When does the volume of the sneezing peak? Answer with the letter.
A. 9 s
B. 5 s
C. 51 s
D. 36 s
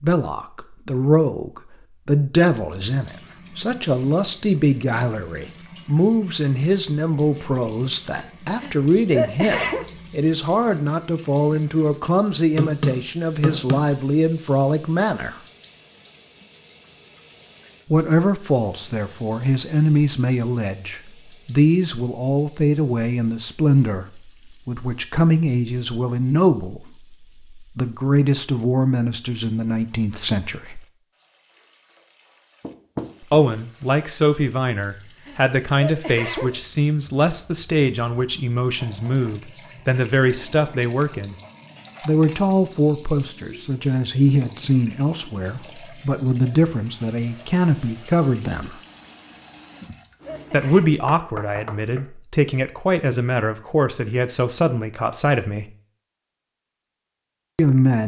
A.